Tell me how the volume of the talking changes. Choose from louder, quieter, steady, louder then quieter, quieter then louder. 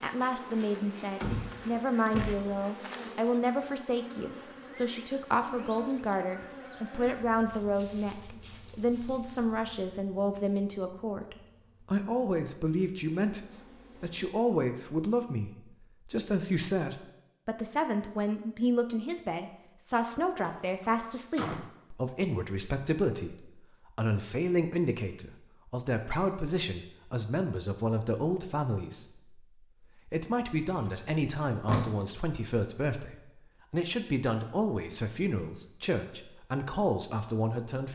steady.